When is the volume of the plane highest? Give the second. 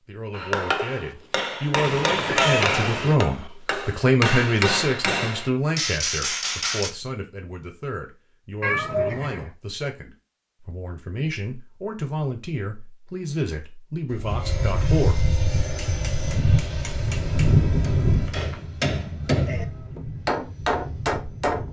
18 s.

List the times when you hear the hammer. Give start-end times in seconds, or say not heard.
0.3-6.9, 15.6-21.6.